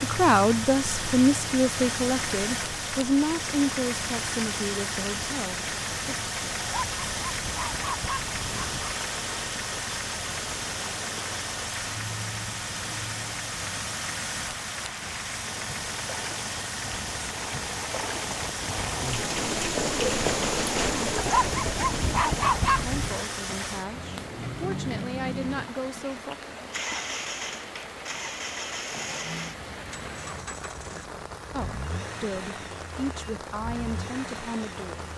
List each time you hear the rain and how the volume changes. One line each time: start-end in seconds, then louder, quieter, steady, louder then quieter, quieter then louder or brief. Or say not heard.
0.0-35.1 louder then quieter.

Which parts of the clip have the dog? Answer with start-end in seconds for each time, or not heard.
6.5-8.9, 21.1-23.2.